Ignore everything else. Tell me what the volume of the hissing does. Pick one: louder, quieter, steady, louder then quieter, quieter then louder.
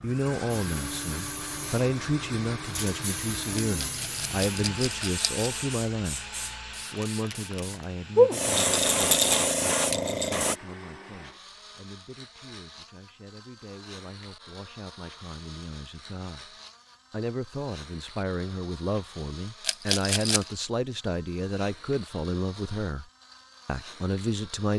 louder.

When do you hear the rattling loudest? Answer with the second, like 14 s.
9 s.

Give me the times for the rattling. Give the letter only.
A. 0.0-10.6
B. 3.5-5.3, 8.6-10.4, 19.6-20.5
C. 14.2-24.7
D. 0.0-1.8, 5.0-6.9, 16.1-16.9
B.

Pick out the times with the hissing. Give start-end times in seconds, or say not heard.
0.0-10.6.